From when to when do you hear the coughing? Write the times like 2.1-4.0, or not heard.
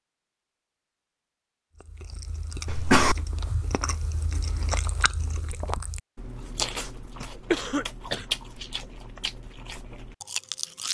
2.6-3.1, 7.5-8.2.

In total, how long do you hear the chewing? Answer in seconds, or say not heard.
9 s.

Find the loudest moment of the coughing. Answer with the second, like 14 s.
3 s.